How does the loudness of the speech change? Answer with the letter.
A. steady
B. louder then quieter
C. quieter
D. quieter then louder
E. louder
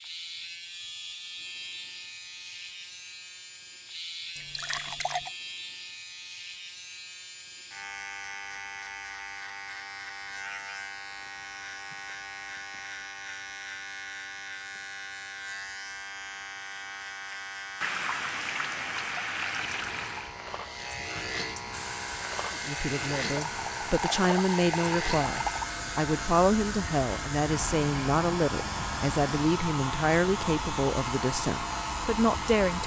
A.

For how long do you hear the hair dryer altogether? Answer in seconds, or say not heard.
11 s.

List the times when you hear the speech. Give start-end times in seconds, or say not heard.
22.6-32.8.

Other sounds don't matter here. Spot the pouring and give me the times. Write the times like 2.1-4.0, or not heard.
4.3-5.3, 17.8-20.4, 23.2-25.7.